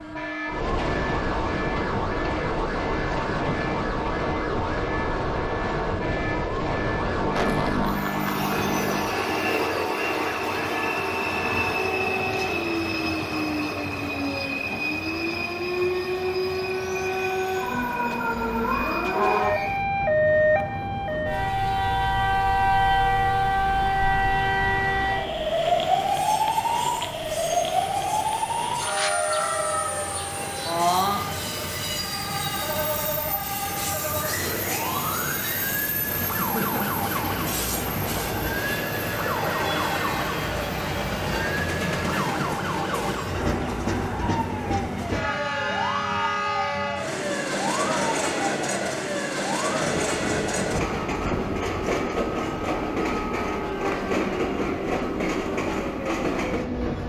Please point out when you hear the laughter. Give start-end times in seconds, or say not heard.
7.2-9.1, 36.4-37.0.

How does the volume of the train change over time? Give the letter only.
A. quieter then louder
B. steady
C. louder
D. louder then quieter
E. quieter
A.